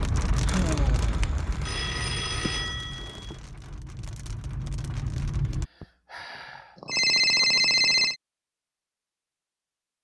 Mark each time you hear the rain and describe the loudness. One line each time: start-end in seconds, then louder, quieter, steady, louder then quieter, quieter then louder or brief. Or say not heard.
0.0-5.7 quieter then louder.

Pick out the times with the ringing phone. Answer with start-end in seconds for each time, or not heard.
1.2-3.4, 6.8-8.2.